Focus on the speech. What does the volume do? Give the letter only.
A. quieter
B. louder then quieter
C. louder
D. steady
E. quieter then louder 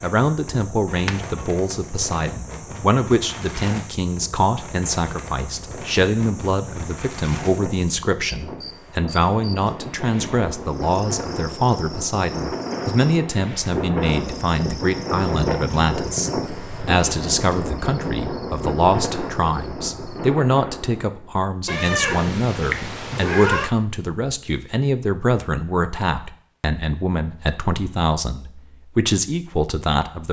D.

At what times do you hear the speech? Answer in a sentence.
You can hear the speech from 0.0 to 30.2 s.